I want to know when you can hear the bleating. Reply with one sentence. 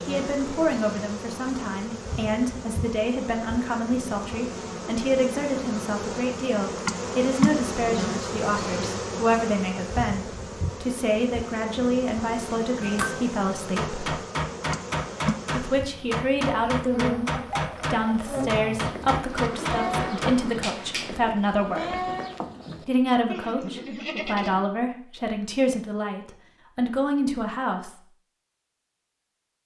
You can hear the bleating from 17.3 to 24.8 s.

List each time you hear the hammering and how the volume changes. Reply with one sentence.
The hammering can be heard from 12.8 to 21.1 s, at a steady volume.